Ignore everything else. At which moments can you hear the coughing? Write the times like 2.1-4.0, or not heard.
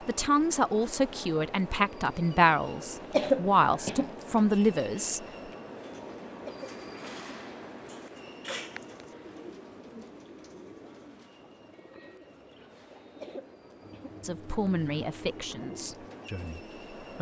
3.1-4.2, 6.5-7.2, 13.2-14.2.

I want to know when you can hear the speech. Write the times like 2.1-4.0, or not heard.
0.1-5.2, 14.2-17.1.